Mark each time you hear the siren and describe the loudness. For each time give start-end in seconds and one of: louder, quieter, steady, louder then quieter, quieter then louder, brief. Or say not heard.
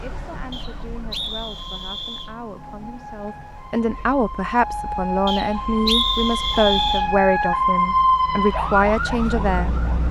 0.0-10.0 louder.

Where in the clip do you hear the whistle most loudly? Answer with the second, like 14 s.
6 s.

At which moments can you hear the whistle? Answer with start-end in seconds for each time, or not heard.
0.5-2.3, 5.2-7.0.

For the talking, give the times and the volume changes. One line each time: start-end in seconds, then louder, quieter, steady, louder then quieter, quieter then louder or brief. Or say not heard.
0.0-10.0 louder.